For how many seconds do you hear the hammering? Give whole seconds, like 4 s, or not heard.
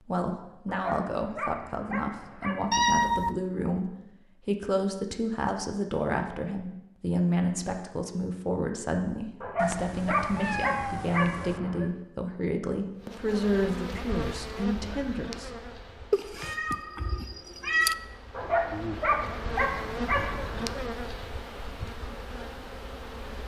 not heard.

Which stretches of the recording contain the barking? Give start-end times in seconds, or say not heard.
0.7-2.7, 9.4-11.9, 18.4-20.8.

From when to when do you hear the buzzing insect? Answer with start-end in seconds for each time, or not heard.
13.0-23.4.